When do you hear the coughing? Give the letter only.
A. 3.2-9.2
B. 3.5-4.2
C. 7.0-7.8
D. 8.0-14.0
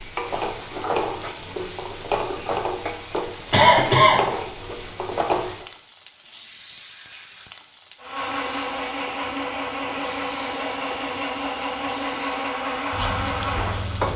B.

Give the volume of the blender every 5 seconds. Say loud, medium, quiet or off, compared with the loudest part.
off, loud, loud.